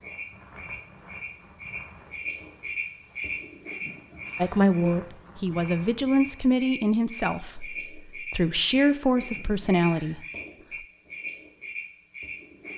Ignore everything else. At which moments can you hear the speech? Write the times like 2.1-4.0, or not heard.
4.3-10.2.